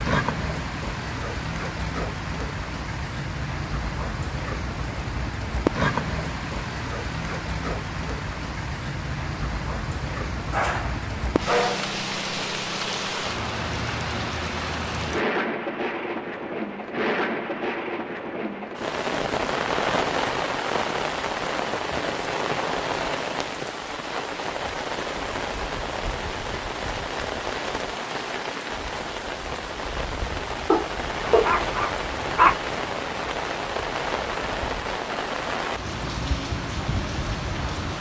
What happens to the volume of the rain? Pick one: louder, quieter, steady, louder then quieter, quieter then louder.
steady.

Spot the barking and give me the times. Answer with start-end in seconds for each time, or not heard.
10.5-11.9, 30.7-32.5.